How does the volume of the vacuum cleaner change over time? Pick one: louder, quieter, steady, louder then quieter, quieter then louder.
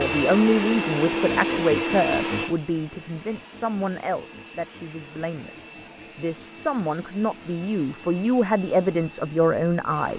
quieter.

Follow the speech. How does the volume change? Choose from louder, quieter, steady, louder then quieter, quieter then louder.
quieter then louder.